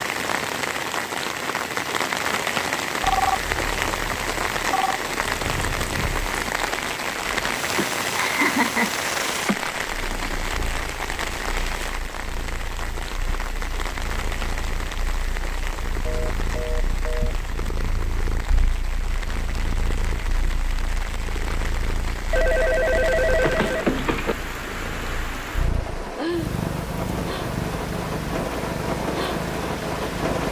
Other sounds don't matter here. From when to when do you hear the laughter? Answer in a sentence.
You can hear the laughter from 7.8 to 9.6 s.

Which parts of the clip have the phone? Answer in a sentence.
You can hear the phone from 3.0 to 5.0 s, from 16.1 to 17.4 s and from 22.3 to 24.4 s.